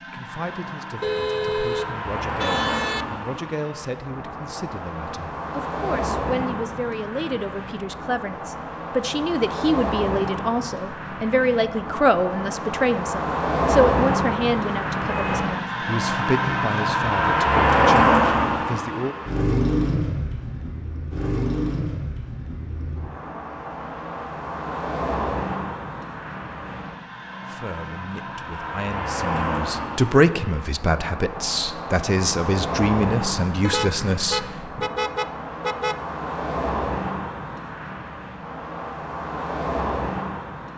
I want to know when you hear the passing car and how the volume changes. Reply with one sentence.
You can hear the passing car from 0.0 to 40.7 s, getting louder then quieter.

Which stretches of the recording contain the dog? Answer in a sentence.
You can't hear the dog here.